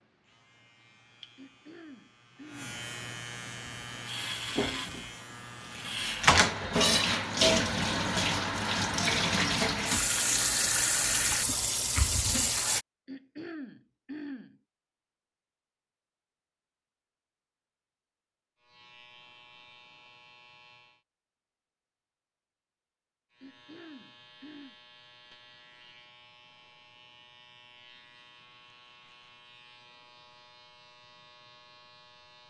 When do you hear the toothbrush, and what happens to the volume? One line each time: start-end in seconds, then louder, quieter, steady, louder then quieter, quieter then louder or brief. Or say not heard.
not heard.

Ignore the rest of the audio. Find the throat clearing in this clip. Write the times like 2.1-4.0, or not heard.
1.4-2.7, 13.1-14.6, 23.4-24.8.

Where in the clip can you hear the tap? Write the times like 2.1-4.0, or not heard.
3.5-12.8.